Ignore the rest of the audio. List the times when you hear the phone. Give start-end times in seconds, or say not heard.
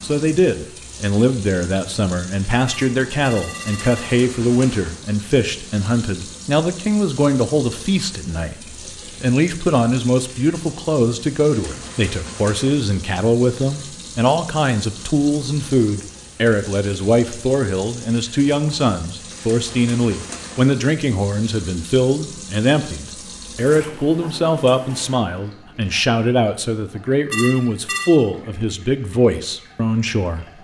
2.6-4.2, 27.3-28.1.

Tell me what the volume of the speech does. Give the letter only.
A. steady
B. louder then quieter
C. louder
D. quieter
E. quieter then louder
A.